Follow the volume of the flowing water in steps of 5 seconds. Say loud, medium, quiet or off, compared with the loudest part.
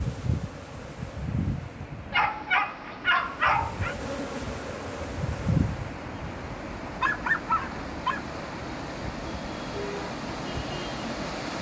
medium, loud, loud.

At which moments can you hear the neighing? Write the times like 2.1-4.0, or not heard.
not heard.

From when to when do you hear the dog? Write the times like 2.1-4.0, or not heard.
2.1-4.0, 6.9-8.2.